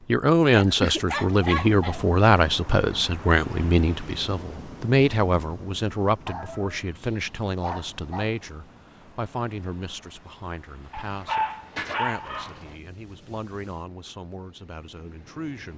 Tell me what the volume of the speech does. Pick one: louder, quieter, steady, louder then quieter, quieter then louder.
quieter.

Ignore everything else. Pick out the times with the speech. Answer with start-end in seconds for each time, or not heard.
0.1-15.7.